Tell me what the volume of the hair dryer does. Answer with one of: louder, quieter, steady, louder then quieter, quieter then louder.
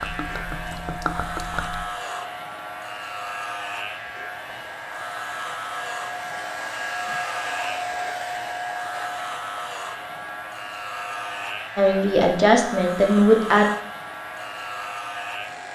louder then quieter.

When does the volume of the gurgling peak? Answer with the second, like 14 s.
1 s.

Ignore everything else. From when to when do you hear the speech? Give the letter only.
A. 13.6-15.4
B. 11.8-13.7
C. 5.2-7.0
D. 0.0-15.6
B.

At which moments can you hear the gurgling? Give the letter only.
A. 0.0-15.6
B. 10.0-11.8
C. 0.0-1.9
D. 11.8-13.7
C.